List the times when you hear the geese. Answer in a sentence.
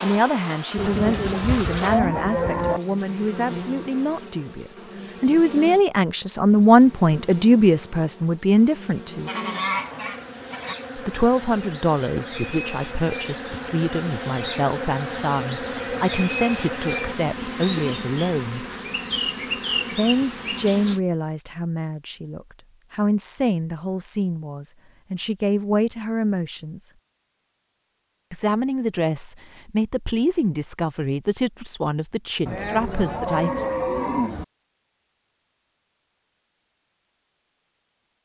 The geese can be heard from 9.2 to 10.8 s.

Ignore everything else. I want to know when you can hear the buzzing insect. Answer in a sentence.
You can hear the buzzing insect from 0.0 to 21.0 s.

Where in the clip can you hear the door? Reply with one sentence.
The door can't be heard in this clip.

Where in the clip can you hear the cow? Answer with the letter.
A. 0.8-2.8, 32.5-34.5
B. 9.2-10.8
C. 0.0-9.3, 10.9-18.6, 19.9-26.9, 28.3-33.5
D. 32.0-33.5
A.